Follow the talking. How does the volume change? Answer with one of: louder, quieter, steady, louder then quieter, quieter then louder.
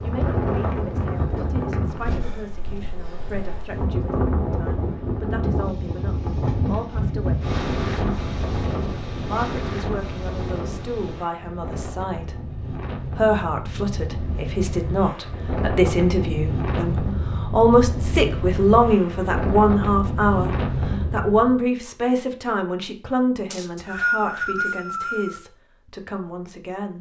louder then quieter.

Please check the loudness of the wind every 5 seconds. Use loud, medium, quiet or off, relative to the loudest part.
loud, loud, medium, loud, loud, off.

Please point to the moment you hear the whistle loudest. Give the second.
24 s.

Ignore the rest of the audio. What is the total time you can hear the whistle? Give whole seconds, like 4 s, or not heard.
2 s.